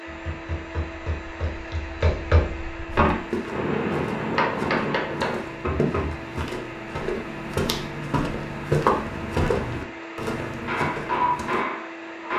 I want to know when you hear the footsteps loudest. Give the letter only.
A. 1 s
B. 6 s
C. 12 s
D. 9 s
D.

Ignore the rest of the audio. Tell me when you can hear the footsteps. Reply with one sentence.
The footsteps can be heard from 3.1 to 11.7 s.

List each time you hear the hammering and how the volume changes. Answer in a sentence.
You can hear the hammering from 0.1 to 6.2 s, getting louder; and briefly from 10.6 to 12.3 s.